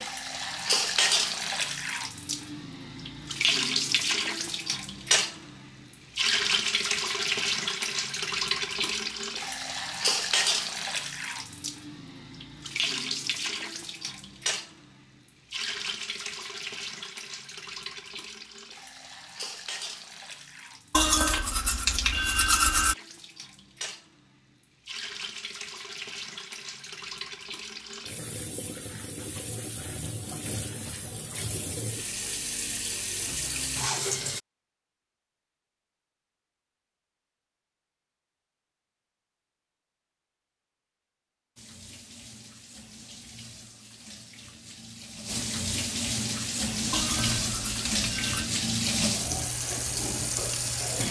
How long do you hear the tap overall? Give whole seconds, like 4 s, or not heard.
44 s.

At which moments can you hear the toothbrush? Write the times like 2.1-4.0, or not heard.
20.9-22.9, 46.9-48.5.